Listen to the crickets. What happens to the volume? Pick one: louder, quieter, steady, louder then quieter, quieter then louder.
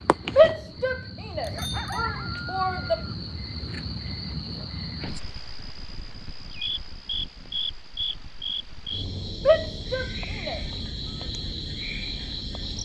steady.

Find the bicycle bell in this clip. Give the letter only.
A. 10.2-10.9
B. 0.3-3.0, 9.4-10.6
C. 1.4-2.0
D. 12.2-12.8
C.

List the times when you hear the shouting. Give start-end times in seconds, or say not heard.
0.3-3.0, 9.4-10.6.